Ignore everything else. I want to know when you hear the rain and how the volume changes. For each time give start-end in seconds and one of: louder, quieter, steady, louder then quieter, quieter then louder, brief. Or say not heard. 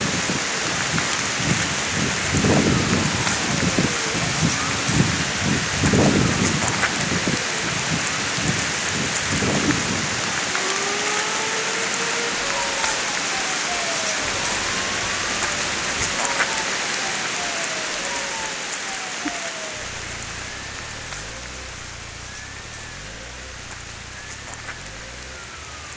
0.0-25.9 quieter.